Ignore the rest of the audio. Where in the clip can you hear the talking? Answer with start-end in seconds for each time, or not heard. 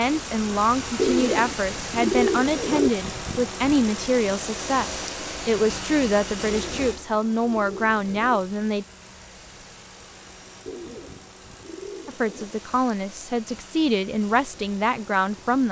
0.0-8.8, 12.1-15.6.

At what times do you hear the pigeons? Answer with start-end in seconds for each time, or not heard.
0.9-2.9, 6.5-8.4, 10.7-12.5.